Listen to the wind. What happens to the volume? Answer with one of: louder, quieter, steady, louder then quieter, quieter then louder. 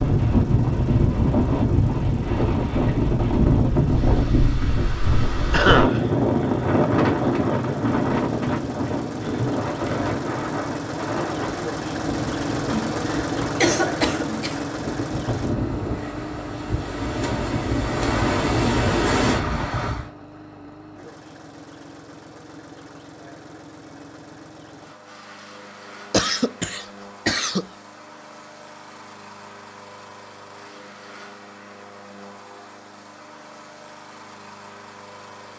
quieter then louder.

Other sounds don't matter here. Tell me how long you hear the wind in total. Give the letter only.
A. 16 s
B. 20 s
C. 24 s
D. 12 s
B.